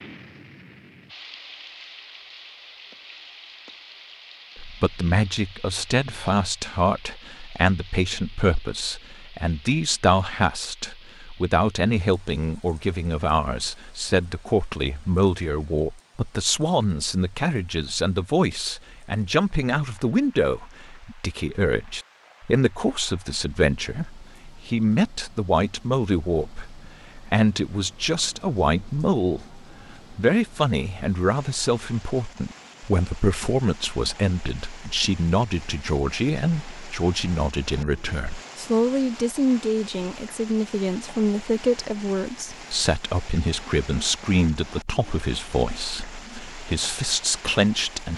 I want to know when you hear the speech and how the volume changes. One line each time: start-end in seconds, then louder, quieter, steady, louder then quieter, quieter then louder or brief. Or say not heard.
4.5-48.1 steady.